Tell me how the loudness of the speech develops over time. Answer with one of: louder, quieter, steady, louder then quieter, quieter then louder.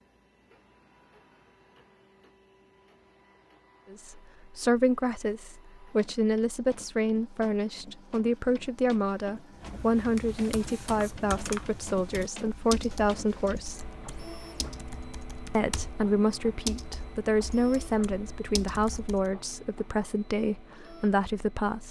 steady.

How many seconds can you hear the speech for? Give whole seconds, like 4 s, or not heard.
16 s.